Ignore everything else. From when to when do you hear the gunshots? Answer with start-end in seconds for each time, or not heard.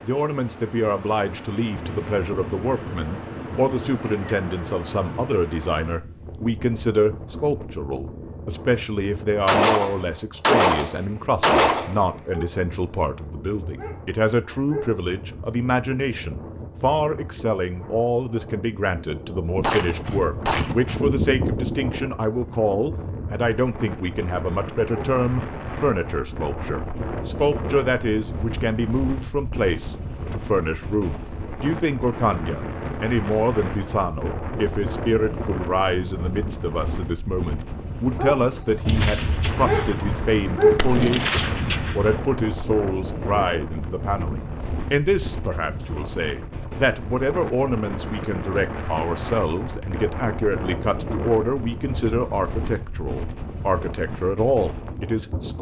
9.4-12.0, 19.6-22.1, 38.9-42.4.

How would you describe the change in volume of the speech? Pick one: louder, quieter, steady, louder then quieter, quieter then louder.
steady.